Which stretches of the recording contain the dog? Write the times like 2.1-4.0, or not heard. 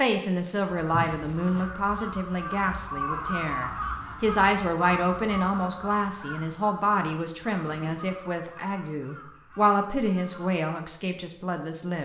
not heard.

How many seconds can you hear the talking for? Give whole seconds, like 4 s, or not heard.
12 s.